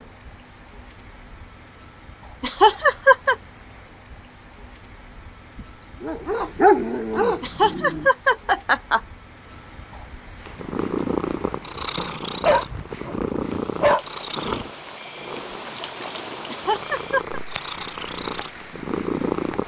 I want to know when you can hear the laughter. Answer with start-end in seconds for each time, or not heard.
2.4-3.4, 7.4-9.0, 16.4-17.4.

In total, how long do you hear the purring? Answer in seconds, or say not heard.
9 s.